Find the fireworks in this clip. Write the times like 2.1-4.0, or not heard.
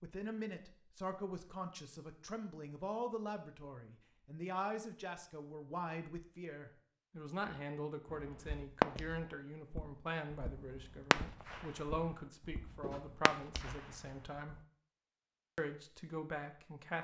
8.1-8.8, 10.4-14.6.